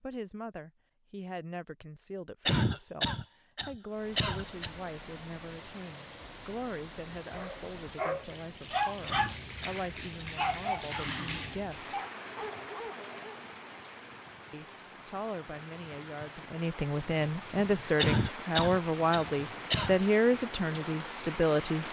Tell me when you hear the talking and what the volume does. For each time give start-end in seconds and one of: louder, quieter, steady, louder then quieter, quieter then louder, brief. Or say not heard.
0.0-11.9 steady
14.5-21.8 louder.